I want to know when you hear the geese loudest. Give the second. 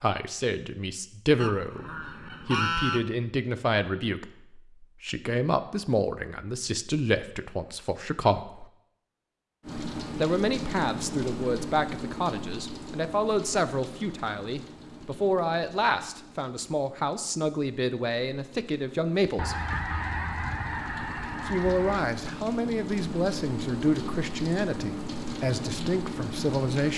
3 s.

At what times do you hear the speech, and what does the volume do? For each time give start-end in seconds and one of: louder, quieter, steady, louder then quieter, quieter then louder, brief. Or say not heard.
0.0-8.7 steady
10.2-19.6 steady
21.4-26.9 steady.